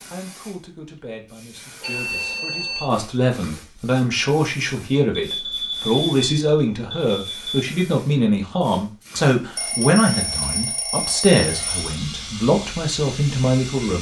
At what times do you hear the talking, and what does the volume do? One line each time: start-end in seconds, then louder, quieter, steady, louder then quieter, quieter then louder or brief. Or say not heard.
0.1-13.9 louder.